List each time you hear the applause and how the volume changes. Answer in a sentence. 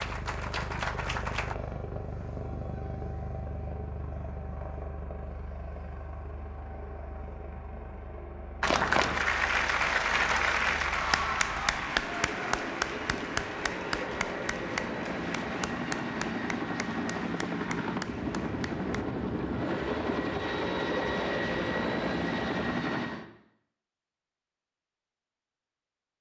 You can hear the applause briefly from 0.0 to 1.6 s; and from 8.6 to 19.1 s, getting quieter.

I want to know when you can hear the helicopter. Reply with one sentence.
The helicopter can be heard from 0.0 to 23.2 s.